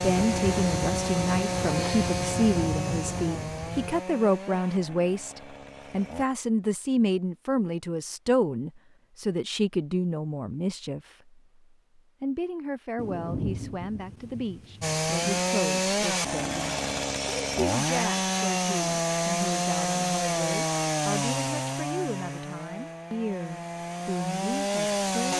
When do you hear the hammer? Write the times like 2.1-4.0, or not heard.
not heard.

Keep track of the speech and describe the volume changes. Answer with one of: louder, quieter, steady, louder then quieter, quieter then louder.
quieter.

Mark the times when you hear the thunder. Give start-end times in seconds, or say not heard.
0.0-4.0, 12.9-15.4.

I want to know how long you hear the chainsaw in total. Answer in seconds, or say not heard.
17 s.